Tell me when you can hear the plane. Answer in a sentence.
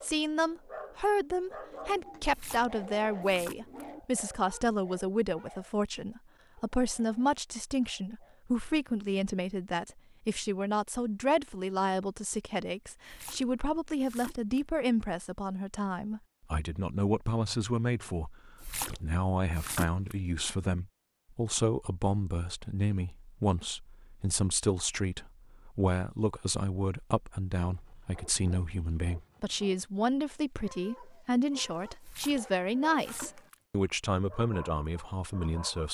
You can't hear the plane here.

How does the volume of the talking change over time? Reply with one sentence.
The loudness of the talking stays about the same.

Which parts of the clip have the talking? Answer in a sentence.
You can hear the talking from 0.0 to 35.8 s.